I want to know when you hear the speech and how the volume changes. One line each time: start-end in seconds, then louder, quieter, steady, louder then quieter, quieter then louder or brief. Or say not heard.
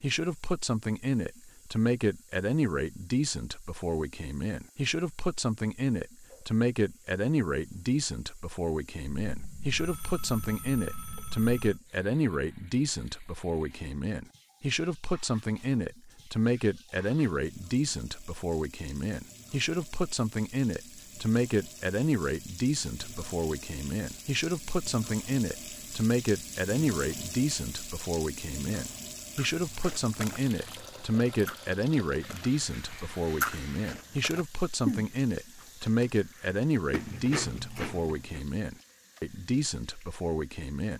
0.0-40.9 steady.